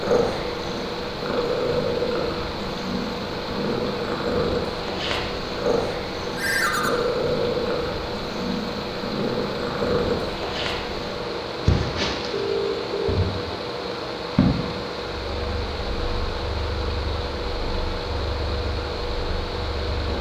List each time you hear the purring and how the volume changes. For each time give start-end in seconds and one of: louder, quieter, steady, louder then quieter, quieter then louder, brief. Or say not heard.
0.0-20.1 quieter.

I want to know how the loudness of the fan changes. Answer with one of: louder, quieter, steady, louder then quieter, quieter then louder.
steady.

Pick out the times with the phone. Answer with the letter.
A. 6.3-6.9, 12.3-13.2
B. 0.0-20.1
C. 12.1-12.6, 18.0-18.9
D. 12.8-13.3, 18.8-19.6
A.